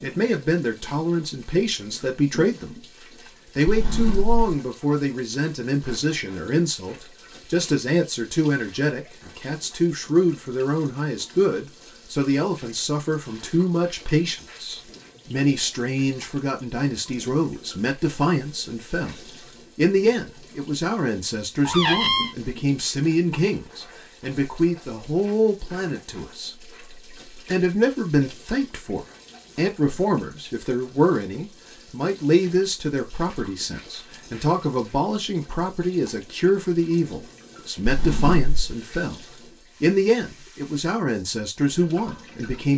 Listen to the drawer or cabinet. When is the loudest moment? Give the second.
22 s.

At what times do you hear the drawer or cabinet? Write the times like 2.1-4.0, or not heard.
3.6-4.5, 21.6-22.3, 37.9-38.5.